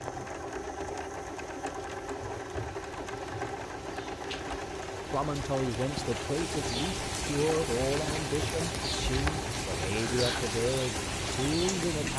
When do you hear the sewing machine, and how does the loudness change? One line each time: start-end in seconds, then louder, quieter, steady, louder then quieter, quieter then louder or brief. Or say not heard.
0.0-12.1 steady.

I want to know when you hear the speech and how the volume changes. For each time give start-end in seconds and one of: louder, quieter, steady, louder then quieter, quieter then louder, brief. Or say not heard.
4.9-12.1 steady.